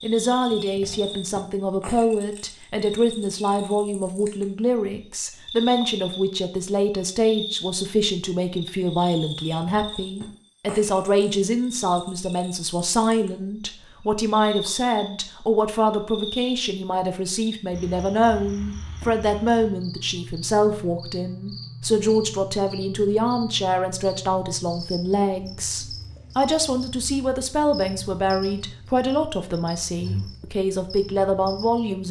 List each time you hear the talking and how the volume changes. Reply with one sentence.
The talking can be heard from 0.0 to 32.0 s, at a steady volume.